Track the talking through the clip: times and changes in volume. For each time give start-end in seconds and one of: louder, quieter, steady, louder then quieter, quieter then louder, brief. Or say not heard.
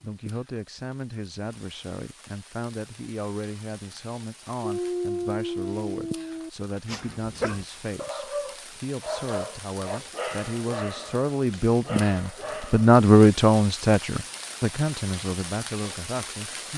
0.0-16.7 louder.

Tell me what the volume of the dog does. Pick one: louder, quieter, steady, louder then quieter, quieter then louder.
quieter.